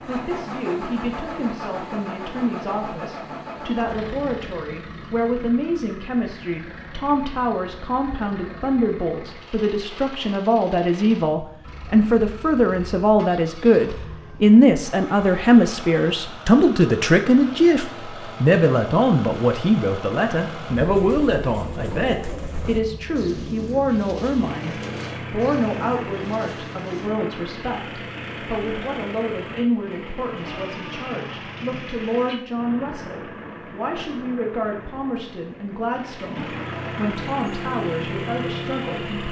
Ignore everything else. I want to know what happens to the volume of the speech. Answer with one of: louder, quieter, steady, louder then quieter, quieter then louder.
louder then quieter.